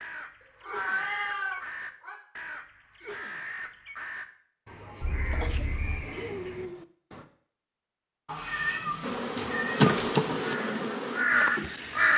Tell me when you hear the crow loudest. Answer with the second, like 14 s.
11 s.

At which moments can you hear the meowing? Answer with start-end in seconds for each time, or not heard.
0.4-2.1, 5.0-6.0, 8.2-10.3.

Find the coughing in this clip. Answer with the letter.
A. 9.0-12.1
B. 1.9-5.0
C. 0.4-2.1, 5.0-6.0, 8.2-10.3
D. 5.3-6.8
D.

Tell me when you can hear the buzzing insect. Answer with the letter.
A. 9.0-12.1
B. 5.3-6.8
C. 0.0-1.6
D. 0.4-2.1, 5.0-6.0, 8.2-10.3
A.